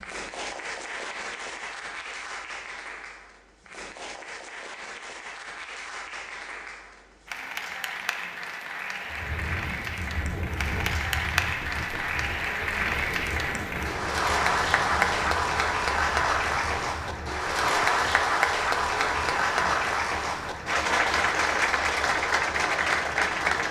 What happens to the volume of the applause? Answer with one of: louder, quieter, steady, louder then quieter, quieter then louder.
louder.